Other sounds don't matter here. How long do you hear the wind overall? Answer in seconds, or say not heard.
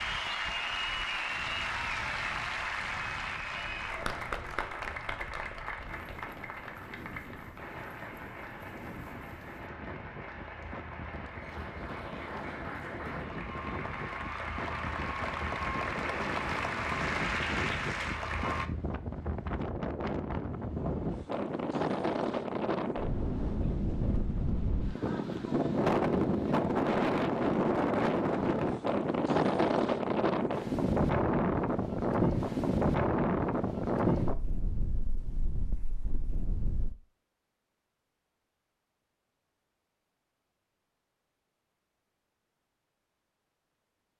37 s.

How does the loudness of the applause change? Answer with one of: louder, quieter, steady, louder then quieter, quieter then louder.
quieter then louder.